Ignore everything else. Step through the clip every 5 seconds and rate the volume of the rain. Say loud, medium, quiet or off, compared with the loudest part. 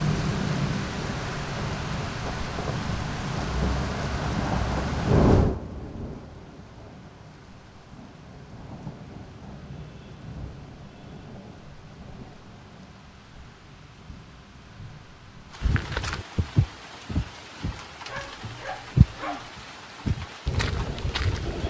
loud, loud, quiet, quiet, quiet.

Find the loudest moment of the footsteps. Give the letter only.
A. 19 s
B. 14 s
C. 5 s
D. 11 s
A.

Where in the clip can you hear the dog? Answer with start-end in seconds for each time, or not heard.
18.1-19.5.